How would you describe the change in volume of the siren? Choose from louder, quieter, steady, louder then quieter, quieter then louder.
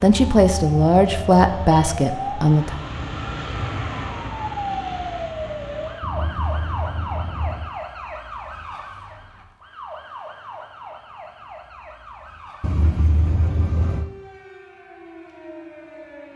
quieter.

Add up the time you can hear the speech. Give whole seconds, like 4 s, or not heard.
3 s.